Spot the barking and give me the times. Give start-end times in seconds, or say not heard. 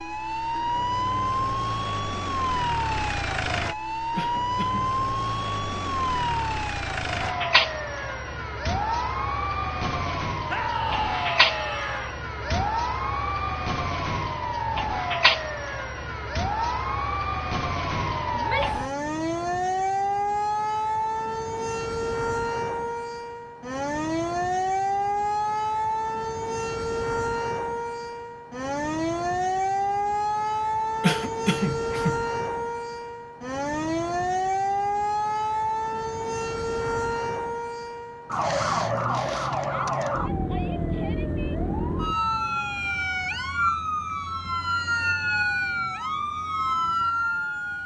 not heard.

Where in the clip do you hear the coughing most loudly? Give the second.
31 s.